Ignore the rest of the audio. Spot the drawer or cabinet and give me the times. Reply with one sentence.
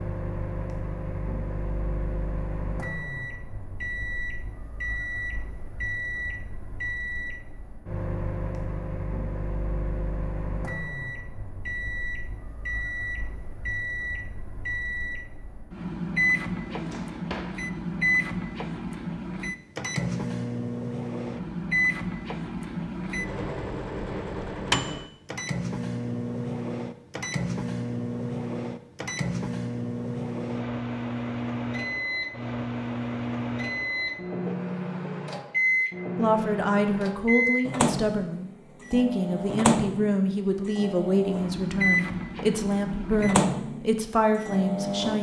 The drawer or cabinet can be heard from 16.7 to 17.6 s.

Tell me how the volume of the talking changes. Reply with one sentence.
The volume of the talking stays about the same.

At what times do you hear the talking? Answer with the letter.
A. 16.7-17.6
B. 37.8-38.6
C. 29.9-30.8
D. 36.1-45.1
D.